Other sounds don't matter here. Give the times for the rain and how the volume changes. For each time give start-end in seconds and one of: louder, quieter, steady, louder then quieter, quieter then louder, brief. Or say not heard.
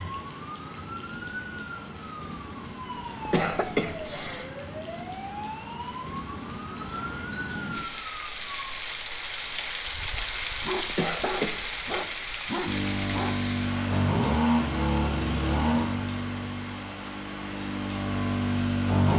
0.0-19.1 louder then quieter.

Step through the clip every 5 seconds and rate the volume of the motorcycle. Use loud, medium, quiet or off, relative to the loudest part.
off, off, loud, loud.